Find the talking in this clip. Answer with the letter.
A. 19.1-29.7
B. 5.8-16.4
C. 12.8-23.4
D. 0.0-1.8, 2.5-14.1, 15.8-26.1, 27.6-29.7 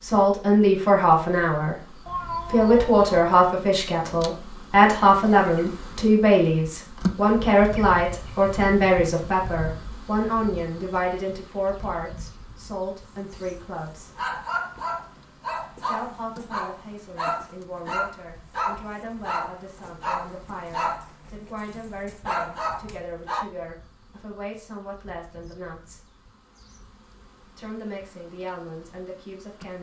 D.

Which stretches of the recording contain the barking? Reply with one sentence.
You can hear the barking from 12.8 to 23.4 s.